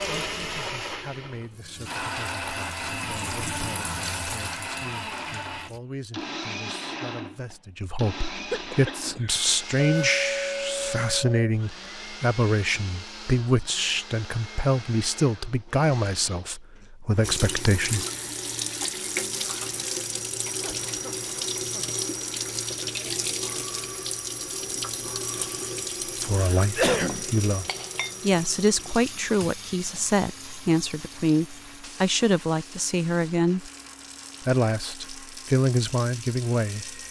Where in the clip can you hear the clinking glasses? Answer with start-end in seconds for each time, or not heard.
9.8-11.3, 27.1-28.1.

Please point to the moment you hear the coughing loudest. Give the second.
27 s.